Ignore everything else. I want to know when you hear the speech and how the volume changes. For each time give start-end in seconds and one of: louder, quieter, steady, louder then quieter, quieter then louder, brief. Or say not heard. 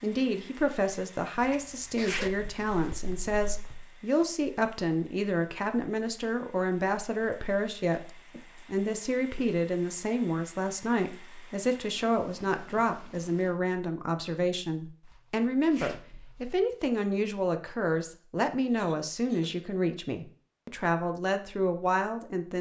0.0-22.5 steady.